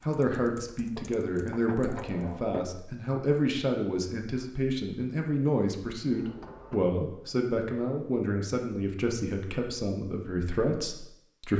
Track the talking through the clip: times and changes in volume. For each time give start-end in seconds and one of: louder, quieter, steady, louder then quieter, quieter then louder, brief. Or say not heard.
0.1-11.5 steady.